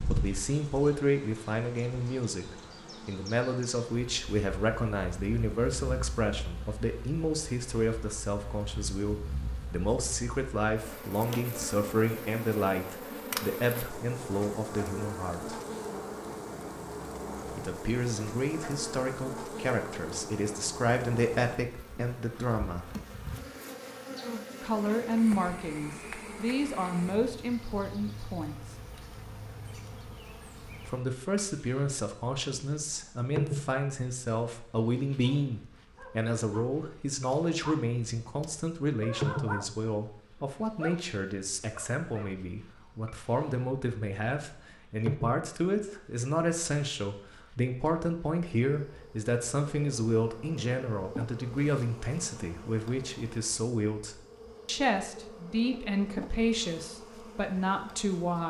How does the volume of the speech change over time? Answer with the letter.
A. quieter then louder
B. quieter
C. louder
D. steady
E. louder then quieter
D.